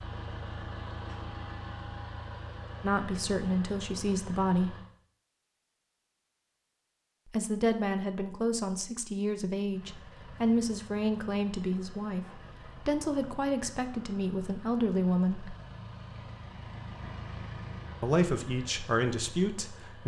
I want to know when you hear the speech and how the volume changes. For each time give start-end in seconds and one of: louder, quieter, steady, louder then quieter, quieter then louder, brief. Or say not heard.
2.8-4.8 brief
7.3-15.6 steady
18.0-20.0 brief.